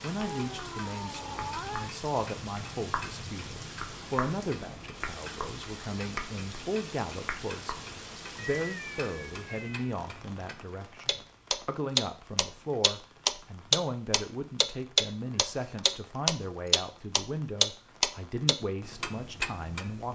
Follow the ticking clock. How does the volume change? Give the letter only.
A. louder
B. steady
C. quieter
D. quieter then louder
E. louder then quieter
A.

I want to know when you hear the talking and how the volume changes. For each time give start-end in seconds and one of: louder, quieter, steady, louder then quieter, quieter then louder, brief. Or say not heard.
0.0-20.1 steady.